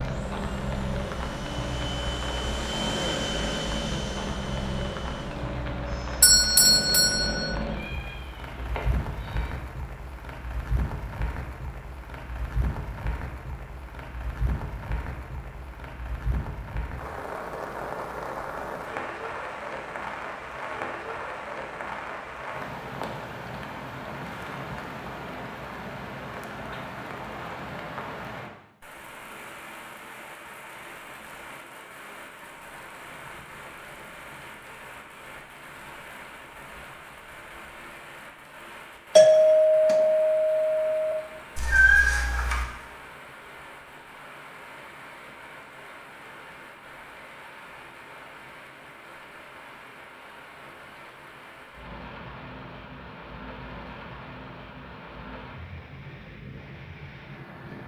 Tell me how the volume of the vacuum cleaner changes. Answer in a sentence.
The volume of the vacuum cleaner goes up, then down.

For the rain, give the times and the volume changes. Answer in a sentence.
The rain can be heard from 0.0 to 57.8 s, getting quieter.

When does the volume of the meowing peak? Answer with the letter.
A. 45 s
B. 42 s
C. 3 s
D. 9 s
B.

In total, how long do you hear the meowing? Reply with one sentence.
You can hear the meowing for 3 seconds altogether.